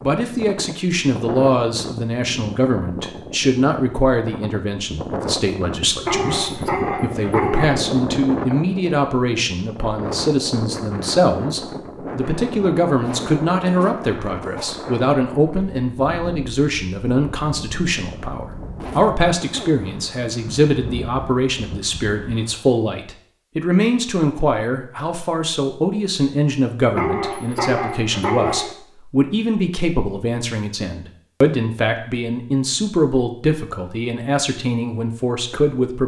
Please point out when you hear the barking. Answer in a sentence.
You can hear the barking from 6.0 to 7.8 s and from 26.9 to 28.8 s.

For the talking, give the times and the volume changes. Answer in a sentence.
You can hear the talking from 0.0 to 36.0 s, at a steady volume.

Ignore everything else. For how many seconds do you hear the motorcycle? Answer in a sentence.
You can't hear the motorcycle here.